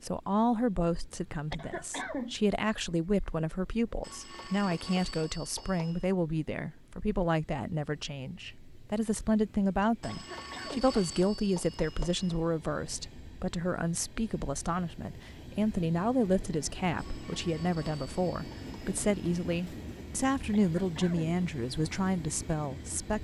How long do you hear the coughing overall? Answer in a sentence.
The coughing can be heard for 2 seconds in total.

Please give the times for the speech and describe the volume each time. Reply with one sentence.
You can hear the speech from 0.0 to 23.1 s, at a steady volume.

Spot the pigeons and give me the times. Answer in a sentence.
You can't hear the pigeons here.